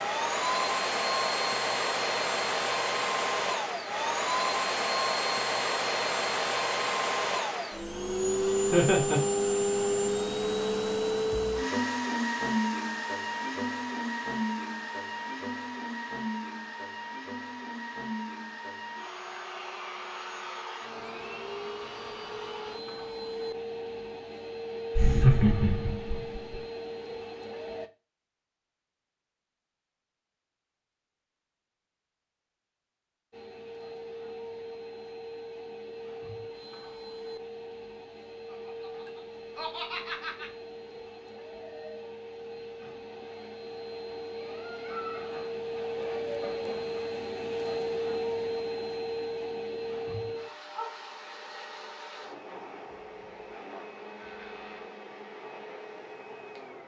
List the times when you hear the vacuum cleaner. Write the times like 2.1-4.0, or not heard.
0.0-27.9, 33.3-56.8.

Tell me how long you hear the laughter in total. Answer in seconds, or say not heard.
4 s.